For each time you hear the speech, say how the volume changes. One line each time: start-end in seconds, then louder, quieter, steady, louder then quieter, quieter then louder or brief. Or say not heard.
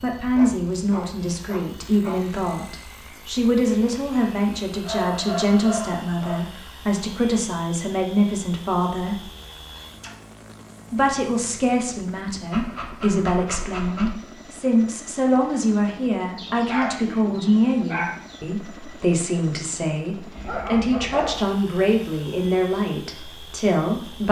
0.0-9.2 steady
10.9-24.2 steady.